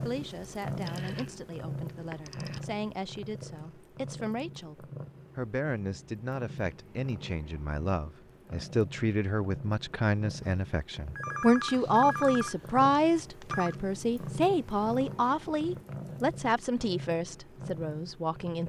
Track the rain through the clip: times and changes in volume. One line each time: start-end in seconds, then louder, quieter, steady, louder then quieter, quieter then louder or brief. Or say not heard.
not heard.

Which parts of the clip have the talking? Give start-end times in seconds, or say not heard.
0.0-18.6.